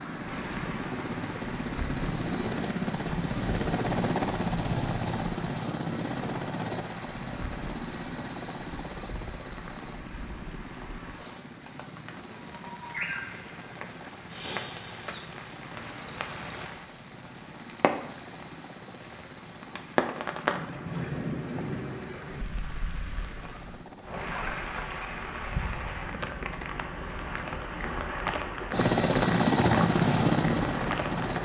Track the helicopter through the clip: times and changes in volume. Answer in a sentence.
The helicopter can be heard from 0.0 to 24.7 s, getting quieter; and briefly from 28.7 to 31.4 s.